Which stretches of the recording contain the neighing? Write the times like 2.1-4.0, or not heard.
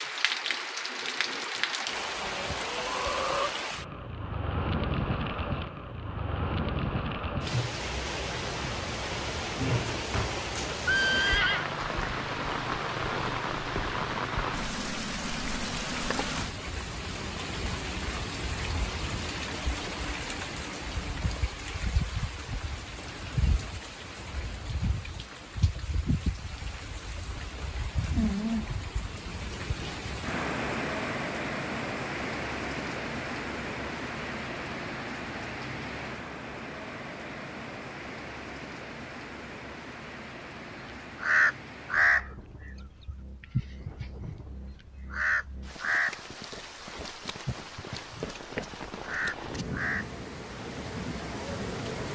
10.1-11.7.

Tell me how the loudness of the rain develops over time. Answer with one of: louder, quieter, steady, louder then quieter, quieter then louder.
quieter.